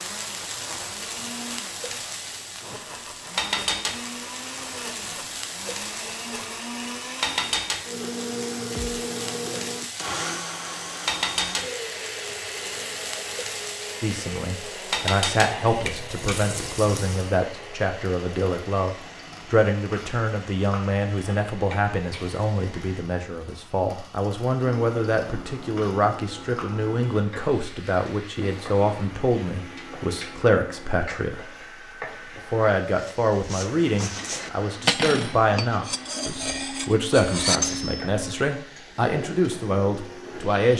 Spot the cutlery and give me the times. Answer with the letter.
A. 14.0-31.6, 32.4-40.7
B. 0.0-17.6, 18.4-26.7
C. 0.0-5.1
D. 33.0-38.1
D.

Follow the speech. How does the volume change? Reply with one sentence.
The loudness of the speech stays about the same.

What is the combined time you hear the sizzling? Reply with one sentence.
You can hear the sizzling for 41 seconds altogether.